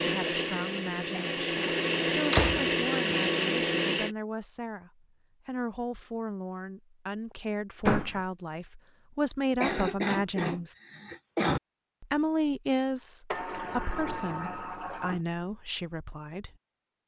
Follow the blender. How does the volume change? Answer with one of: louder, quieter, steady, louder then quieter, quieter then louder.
louder.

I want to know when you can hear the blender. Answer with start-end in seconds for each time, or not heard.
0.0-4.2.